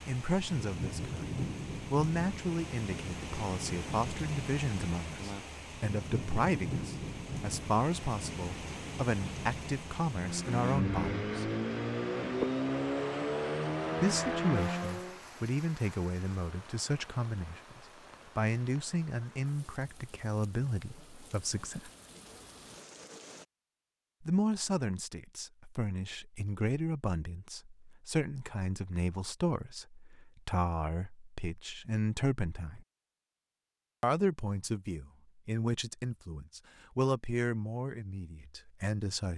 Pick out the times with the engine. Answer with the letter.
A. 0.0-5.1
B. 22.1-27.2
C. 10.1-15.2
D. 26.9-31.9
C.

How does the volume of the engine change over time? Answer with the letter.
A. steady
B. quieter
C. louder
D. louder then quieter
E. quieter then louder
A.